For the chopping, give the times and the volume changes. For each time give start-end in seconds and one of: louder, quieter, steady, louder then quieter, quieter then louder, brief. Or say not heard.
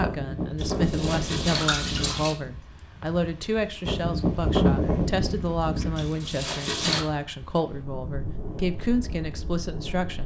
not heard.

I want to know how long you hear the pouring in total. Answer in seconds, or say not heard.
3 s.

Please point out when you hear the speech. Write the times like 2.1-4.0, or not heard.
0.0-10.2.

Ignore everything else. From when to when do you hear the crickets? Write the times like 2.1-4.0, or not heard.
not heard.